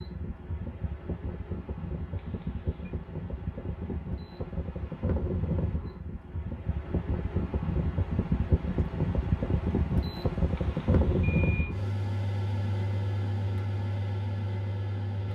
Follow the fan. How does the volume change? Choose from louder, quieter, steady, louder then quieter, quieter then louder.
louder then quieter.